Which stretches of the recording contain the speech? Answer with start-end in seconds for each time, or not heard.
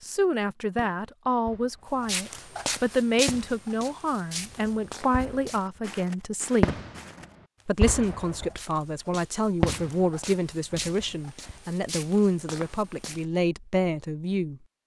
0.0-6.7, 7.7-14.6.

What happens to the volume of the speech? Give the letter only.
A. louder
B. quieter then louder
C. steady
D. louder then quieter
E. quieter
C.